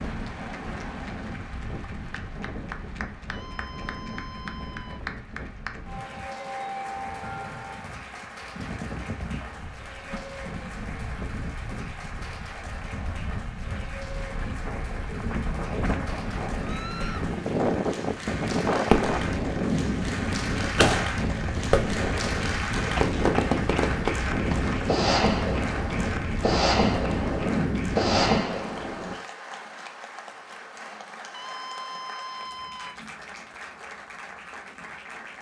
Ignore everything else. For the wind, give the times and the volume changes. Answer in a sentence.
You can hear the wind from 0.0 to 28.4 s, getting louder.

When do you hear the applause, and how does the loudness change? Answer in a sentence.
The applause can be heard from 0.0 to 35.3 s, getting louder then quieter.